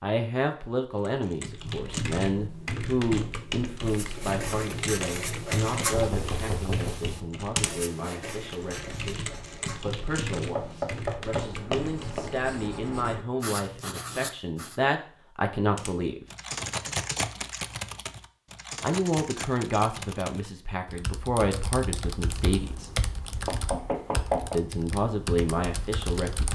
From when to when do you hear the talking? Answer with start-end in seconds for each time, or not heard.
0.0-16.2, 18.8-22.9, 24.5-26.5.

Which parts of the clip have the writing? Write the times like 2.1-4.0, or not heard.
3.8-14.8.